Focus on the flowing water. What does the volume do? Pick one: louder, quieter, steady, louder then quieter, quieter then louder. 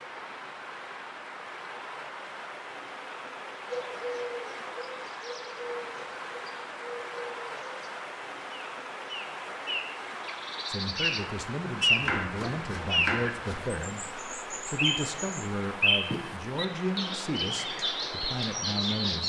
steady.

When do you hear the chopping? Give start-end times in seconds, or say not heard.
12.0-13.8.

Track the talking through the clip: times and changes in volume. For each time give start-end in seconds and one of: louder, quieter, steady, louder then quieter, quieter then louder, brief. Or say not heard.
10.7-19.2 steady.